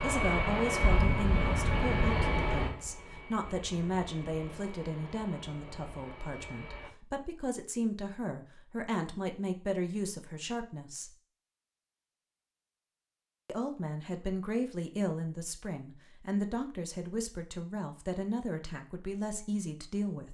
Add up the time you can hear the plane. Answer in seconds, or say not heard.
7 s.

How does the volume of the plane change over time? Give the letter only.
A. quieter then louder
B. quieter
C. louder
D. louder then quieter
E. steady
B.